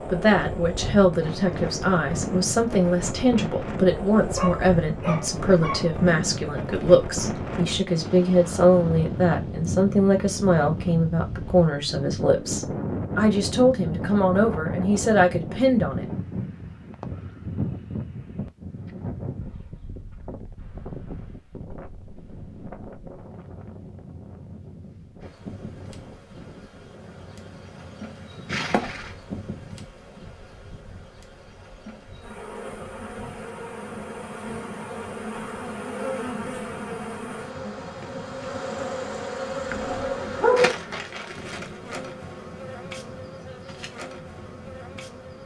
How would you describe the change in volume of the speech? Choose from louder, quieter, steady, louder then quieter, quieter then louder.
steady.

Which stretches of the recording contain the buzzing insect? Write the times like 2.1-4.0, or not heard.
25.2-45.4.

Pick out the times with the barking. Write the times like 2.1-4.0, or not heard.
4.2-5.9, 39.7-40.8.